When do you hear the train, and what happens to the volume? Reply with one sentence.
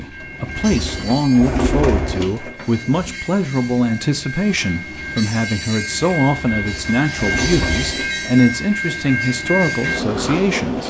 You can hear the train from 0.0 to 10.8 s, getting louder.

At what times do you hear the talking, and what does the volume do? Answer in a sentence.
The talking can be heard from 0.0 to 10.8 s, at a steady volume.